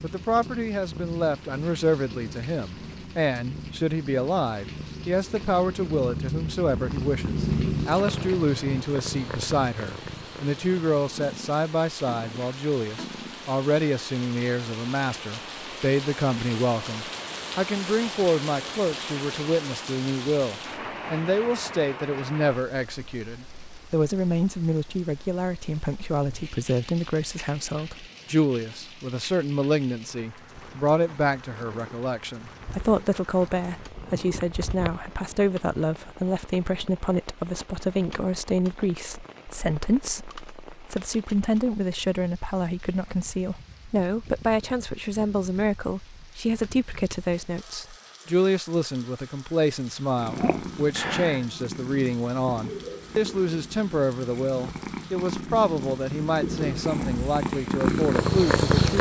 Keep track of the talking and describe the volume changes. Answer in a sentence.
The volume of the talking stays about the same.